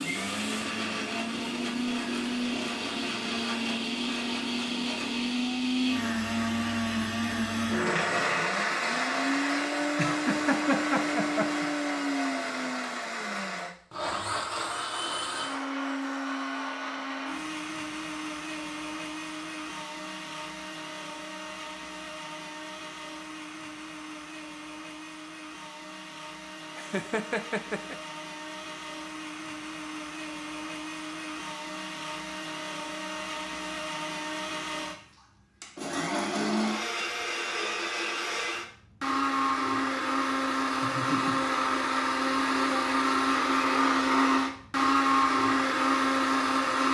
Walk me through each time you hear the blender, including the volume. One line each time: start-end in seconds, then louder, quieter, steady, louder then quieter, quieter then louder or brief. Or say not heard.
0.0-46.8 quieter then louder.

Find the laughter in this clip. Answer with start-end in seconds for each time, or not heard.
9.9-11.7, 26.8-27.9, 40.7-41.4.